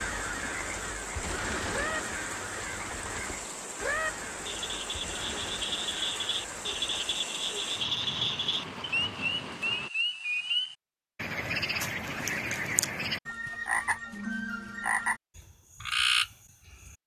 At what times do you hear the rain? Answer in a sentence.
The rain can be heard from 0.0 to 9.9 s.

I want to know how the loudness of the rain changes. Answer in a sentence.
The loudness of the rain stays about the same.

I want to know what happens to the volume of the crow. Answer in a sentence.
The volume of the crow goes down.